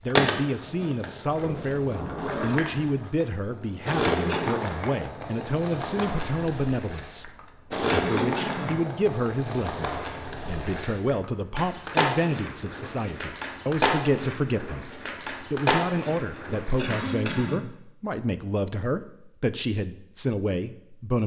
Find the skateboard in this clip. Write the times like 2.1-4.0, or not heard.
0.1-17.4.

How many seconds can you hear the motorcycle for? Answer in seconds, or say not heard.
not heard.